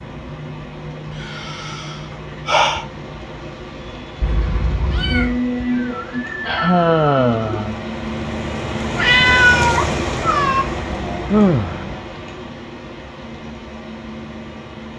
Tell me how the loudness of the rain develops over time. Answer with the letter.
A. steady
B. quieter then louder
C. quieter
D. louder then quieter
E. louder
D.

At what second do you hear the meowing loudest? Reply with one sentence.
The loudest moment of the meowing is at 9 seconds.